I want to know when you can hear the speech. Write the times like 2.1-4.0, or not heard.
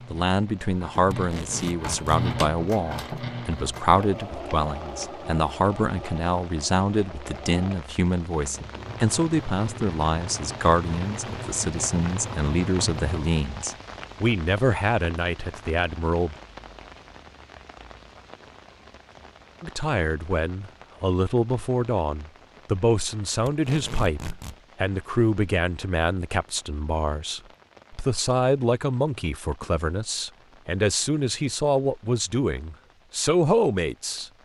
0.1-16.4, 19.6-34.3.